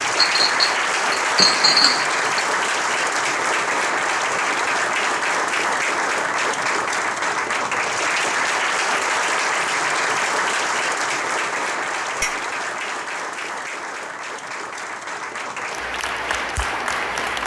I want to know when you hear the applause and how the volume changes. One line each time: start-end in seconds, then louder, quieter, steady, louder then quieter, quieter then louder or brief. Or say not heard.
0.0-17.4 quieter.